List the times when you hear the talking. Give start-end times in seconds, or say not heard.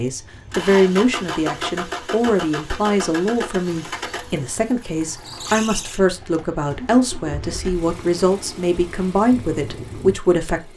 0.0-10.7.